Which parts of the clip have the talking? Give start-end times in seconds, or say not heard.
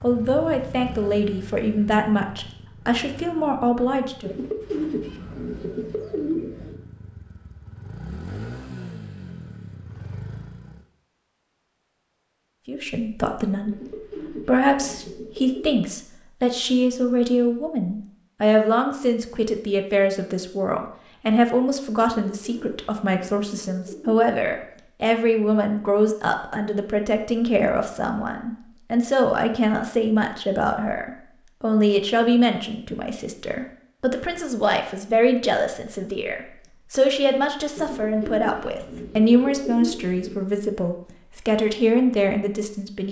0.0-4.3, 12.7-43.0.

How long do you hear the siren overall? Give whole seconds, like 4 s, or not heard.
not heard.